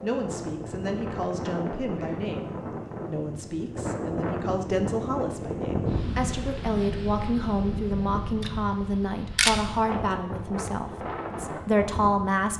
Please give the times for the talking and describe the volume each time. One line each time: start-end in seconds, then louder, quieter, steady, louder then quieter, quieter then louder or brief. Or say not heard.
0.0-12.5 louder.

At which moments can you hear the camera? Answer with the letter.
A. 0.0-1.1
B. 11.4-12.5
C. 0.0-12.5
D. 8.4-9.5
D.